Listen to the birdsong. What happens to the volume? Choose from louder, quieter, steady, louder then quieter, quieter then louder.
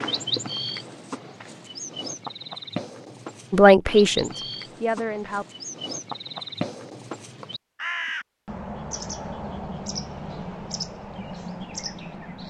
steady.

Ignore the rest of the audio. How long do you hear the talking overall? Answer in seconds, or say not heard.
2 s.